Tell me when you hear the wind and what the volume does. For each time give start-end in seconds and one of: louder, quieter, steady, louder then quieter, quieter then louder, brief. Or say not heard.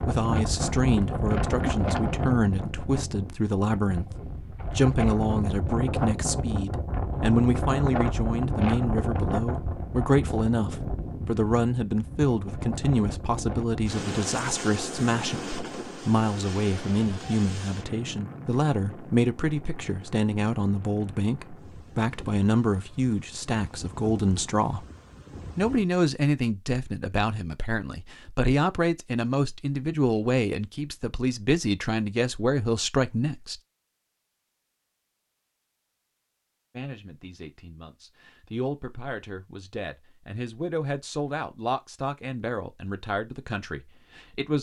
0.0-25.9 quieter.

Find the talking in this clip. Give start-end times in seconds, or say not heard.
0.1-24.9, 25.6-33.6, 36.8-44.5.